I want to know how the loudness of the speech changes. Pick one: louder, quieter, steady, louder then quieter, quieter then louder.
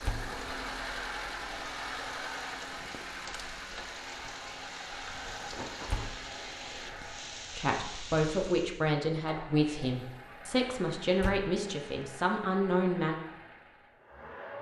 steady.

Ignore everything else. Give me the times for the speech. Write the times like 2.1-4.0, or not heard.
7.5-13.2.